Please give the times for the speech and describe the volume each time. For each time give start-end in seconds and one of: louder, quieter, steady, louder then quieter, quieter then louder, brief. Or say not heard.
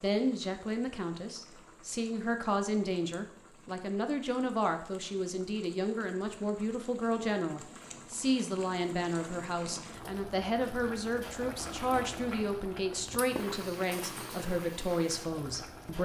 0.0-15.9 steady.